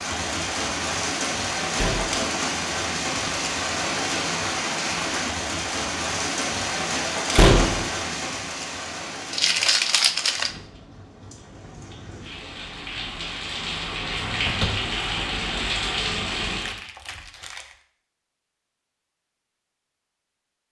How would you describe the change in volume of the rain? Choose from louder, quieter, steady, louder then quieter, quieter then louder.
quieter then louder.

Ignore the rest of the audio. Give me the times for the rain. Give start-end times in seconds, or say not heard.
0.0-16.8.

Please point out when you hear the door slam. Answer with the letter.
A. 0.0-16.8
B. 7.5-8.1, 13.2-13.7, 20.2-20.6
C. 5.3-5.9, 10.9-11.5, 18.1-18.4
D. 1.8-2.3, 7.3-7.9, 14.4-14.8
D.